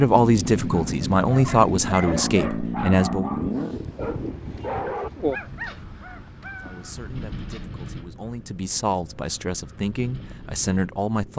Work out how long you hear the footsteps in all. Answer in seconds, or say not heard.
not heard.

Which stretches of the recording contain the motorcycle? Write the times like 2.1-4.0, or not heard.
0.0-11.3.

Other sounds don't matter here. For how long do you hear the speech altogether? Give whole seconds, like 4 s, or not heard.
8 s.